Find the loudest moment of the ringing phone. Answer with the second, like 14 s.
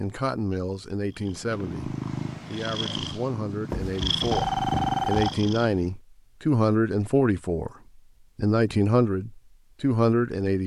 5 s.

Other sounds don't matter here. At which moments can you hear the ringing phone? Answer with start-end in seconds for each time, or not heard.
3.7-5.4.